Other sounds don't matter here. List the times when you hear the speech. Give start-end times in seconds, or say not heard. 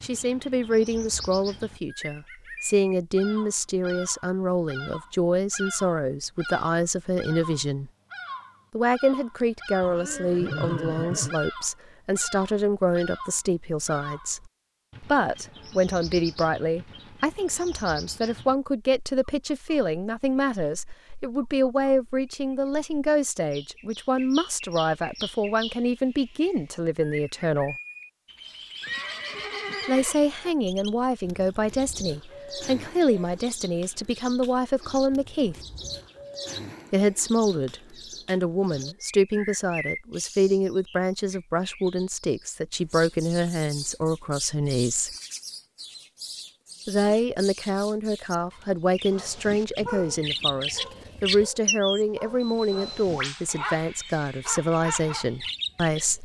0.0-7.9, 8.7-27.8, 29.9-35.5, 36.9-45.1, 46.9-56.2.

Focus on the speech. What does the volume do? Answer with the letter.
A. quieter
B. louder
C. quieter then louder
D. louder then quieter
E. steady
E.